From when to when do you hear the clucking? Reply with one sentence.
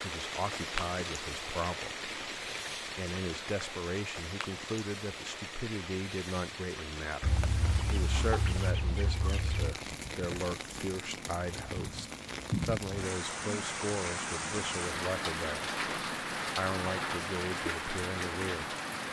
The clucking can be heard from 7.2 to 9.8 s.